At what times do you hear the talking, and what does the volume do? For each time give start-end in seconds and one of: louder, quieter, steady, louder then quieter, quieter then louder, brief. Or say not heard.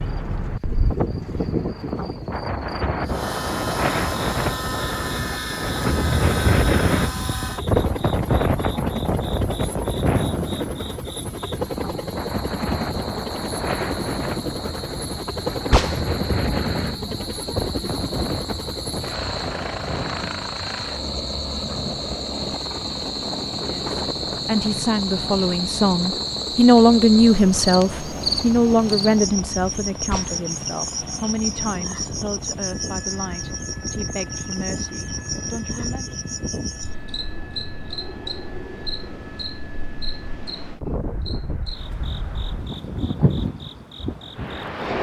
23.6-36.1 louder then quieter.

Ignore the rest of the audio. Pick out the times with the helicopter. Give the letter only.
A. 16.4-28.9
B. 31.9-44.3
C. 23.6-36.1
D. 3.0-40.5
D.